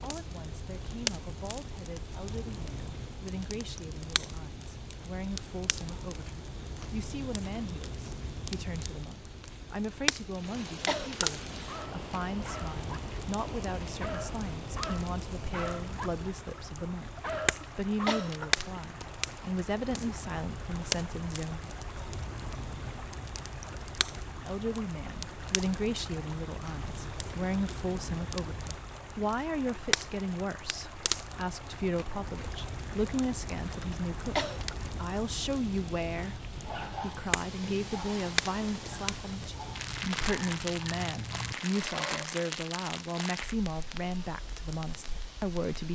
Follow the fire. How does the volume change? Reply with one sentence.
The volume of the fire stays about the same.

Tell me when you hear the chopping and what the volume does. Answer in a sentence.
The chopping can't be heard in this clip.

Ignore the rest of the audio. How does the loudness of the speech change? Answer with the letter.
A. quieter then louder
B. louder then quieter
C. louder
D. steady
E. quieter
C.